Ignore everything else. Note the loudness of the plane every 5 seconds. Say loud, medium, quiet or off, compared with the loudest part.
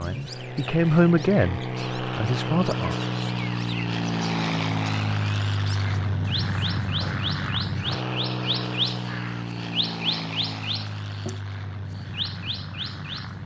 loud, loud, medium.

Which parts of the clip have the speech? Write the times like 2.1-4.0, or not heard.
0.0-3.0.